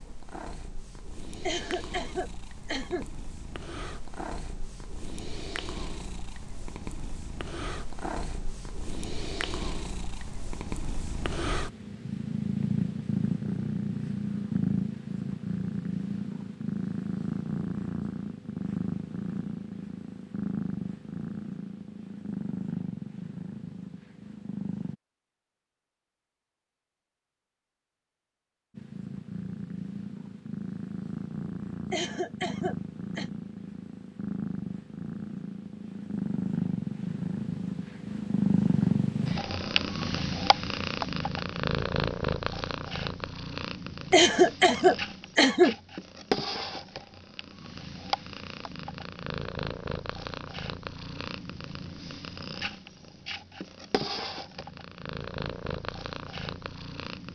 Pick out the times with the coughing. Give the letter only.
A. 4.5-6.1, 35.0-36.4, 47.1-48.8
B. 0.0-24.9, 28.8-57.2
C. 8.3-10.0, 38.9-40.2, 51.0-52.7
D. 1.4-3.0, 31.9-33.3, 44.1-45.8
D.